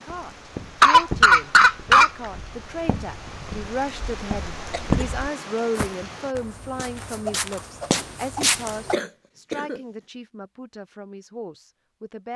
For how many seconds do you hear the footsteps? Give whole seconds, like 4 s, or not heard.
9 s.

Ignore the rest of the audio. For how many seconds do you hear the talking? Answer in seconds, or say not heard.
12 s.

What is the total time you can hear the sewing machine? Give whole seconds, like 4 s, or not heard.
not heard.